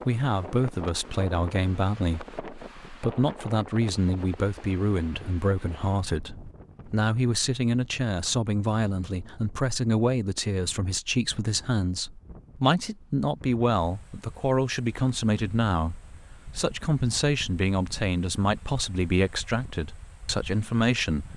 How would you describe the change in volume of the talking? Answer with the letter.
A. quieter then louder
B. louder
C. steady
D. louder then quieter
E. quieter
C.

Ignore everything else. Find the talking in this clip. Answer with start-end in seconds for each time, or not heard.
0.1-21.3.